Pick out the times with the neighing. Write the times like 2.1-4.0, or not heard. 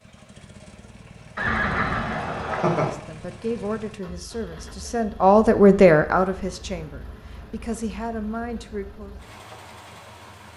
1.4-2.9.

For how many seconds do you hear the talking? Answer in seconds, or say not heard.
6 s.